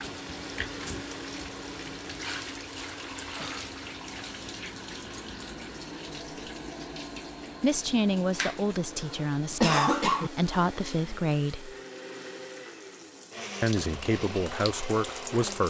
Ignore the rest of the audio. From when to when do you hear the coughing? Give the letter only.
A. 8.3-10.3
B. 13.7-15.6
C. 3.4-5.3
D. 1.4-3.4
A.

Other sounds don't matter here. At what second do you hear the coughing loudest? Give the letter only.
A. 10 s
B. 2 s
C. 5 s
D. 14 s
A.